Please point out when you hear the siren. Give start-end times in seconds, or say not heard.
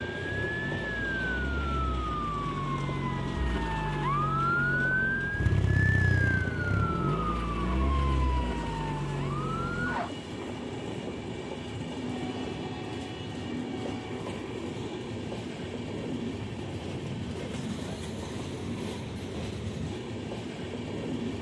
0.0-10.1.